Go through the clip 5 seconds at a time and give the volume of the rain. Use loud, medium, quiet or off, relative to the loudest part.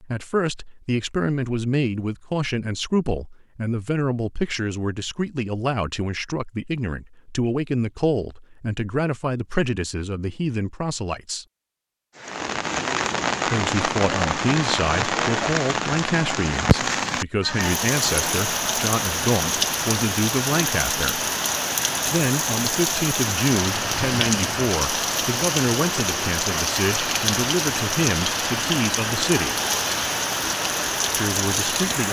off, off, loud, loud, loud, loud, loud.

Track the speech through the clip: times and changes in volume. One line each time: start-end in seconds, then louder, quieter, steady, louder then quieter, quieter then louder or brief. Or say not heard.
0.0-11.4 steady
13.4-21.2 steady
22.1-29.6 steady
31.1-32.0 brief.